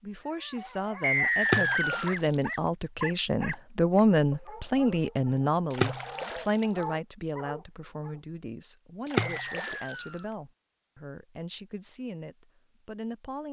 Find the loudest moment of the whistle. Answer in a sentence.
The loudest moment of the whistle is at 1 second.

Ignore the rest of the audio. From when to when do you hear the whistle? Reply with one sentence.
The whistle can be heard from 1.0 to 2.1 s and from 9.2 to 10.3 s.